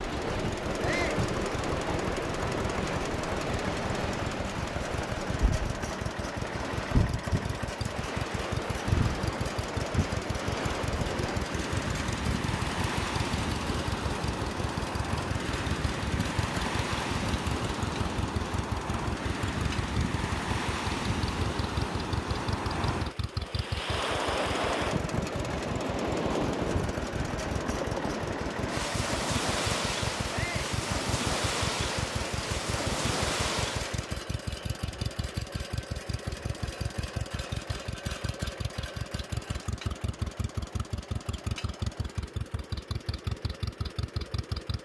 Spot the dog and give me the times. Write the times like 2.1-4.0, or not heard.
not heard.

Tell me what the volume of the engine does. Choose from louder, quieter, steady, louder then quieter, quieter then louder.
steady.